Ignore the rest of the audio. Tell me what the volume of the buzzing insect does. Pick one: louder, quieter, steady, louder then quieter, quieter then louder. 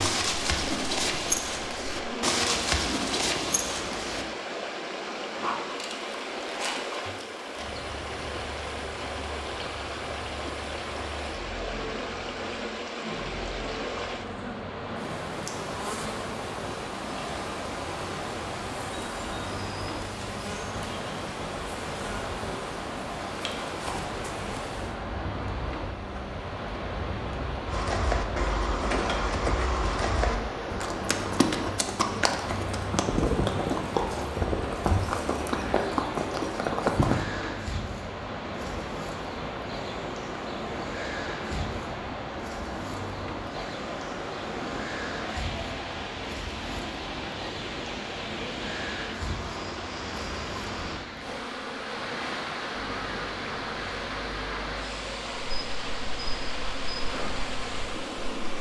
steady.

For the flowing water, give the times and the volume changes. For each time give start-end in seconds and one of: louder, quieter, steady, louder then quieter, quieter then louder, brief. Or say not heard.
0.1-58.5 steady.